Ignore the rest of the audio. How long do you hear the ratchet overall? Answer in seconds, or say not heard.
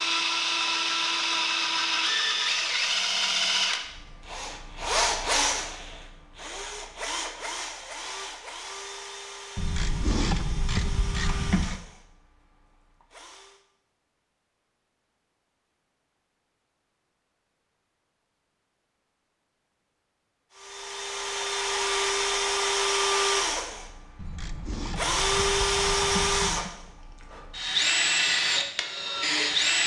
5 s.